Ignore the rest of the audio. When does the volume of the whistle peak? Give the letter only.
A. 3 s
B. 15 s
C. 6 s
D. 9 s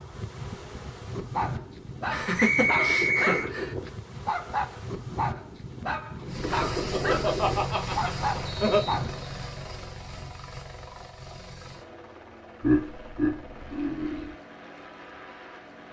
A.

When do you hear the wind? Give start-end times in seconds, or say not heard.
0.0-9.2.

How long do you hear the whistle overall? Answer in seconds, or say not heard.
2 s.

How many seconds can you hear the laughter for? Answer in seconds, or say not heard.
6 s.